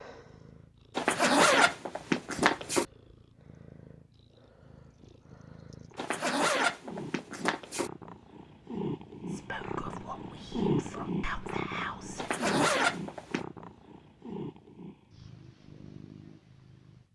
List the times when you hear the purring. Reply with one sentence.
You can hear the purring from 0.0 to 17.0 s.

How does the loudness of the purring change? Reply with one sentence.
The volume of the purring goes up, then down.